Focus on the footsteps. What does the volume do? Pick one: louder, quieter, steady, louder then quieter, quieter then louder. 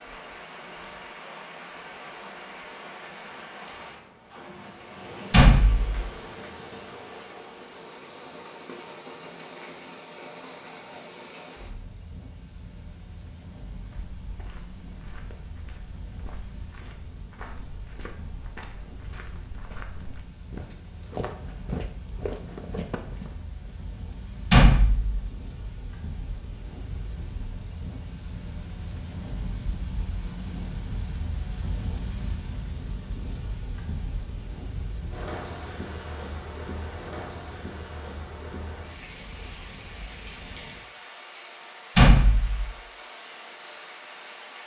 louder.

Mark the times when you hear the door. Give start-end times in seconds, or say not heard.
5.3-6.1, 24.5-25.2, 42.0-42.7.